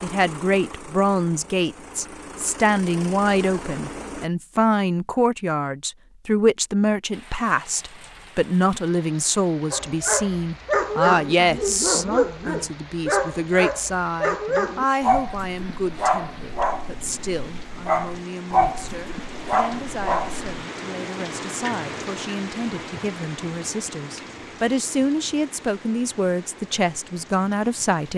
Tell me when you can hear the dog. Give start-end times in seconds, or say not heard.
9.7-20.6.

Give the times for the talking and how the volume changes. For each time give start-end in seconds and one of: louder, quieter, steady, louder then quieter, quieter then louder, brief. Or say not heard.
0.0-28.1 quieter then louder.